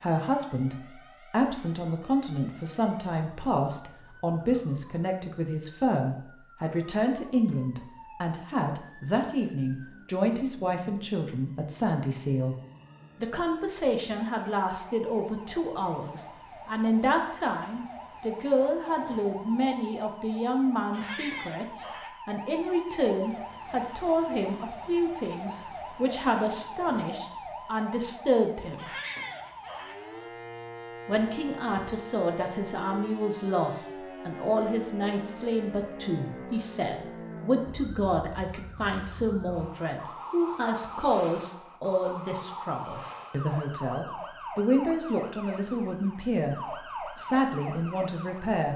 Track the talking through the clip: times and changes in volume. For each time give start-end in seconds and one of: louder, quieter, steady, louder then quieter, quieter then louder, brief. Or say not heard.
0.0-12.6 steady
13.2-28.9 steady
31.1-48.7 steady.